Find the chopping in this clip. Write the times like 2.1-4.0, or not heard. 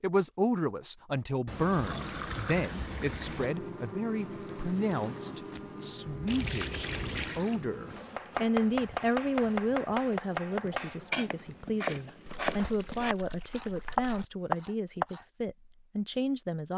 8.0-15.2.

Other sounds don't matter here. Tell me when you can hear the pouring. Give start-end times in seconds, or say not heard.
1.4-3.5, 6.2-7.6, 12.2-14.2.